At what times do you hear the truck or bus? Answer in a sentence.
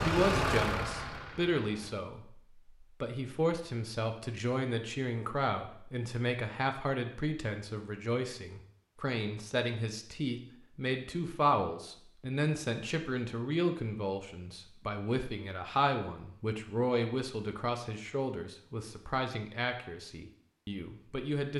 You can hear the truck or bus from 0.0 to 1.9 s.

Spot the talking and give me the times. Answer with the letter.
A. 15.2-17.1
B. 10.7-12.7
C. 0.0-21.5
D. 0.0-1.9
C.